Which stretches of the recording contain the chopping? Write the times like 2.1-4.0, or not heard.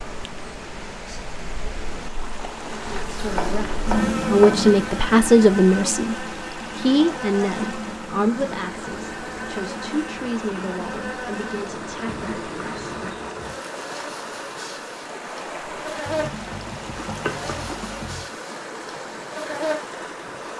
3.4-4.7, 16.1-18.2.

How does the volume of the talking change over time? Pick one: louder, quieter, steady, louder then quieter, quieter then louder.
quieter.